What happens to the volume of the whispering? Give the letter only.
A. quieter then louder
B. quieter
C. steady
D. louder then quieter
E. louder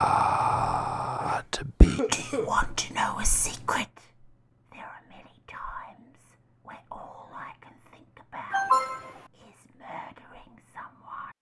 B.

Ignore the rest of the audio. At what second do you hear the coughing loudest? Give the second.
9 s.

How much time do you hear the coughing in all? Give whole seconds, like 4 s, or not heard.
2 s.